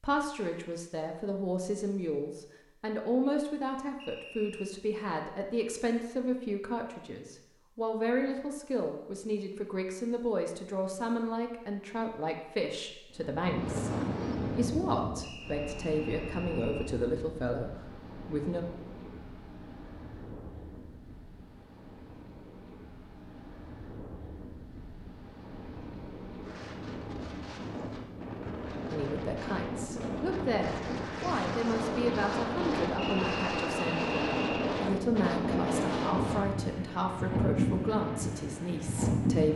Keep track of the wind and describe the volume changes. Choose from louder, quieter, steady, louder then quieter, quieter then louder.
quieter then louder.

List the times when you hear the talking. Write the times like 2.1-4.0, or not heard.
0.0-18.6, 28.9-39.5.